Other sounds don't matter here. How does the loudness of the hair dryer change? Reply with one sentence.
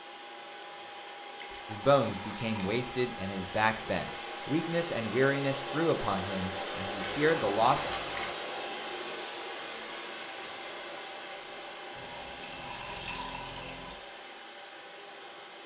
The loudness of the hair dryer goes up, then down.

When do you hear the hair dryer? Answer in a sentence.
You can hear the hair dryer from 0.0 to 15.6 s.